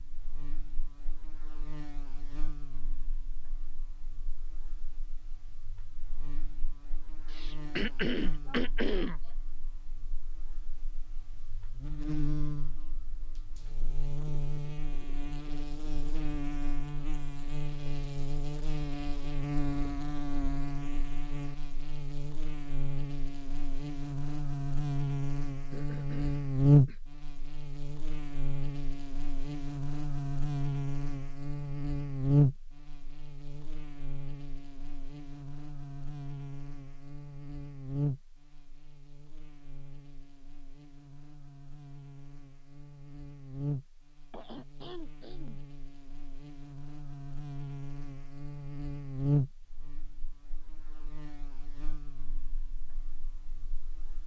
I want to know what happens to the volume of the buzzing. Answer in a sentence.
The loudness of the buzzing goes up, then down.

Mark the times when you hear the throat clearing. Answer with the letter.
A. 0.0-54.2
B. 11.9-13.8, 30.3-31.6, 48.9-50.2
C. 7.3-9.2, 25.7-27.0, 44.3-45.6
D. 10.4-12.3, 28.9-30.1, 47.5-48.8
C.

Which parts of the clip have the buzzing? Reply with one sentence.
You can hear the buzzing from 0.0 to 54.2 s.